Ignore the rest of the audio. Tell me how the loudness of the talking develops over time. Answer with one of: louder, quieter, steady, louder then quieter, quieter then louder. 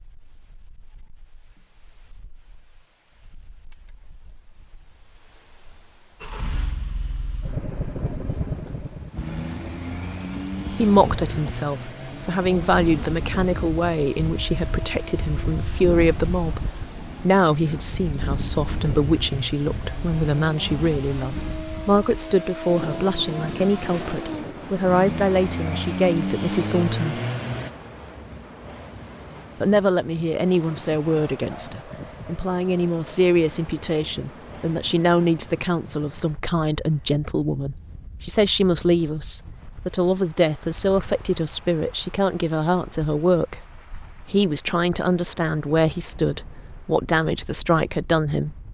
steady.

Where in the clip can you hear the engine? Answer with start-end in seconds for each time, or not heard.
6.2-27.7.